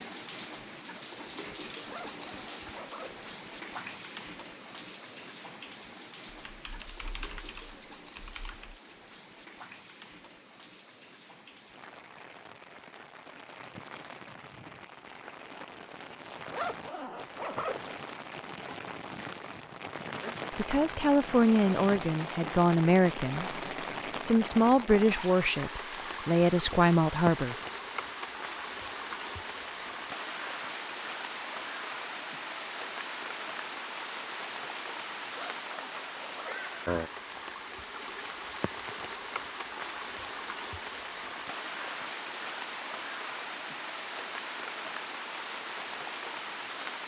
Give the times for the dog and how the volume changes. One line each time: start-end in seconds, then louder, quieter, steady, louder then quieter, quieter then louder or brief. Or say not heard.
not heard.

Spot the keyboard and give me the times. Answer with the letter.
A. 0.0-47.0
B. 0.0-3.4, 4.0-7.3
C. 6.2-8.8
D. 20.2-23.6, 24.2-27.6
C.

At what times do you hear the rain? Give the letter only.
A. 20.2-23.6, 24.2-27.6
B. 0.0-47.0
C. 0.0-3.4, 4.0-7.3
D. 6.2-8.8
B.